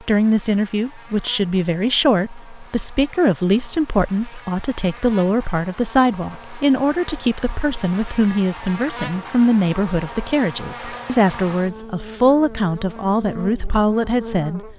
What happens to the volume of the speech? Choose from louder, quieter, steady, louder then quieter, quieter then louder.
steady.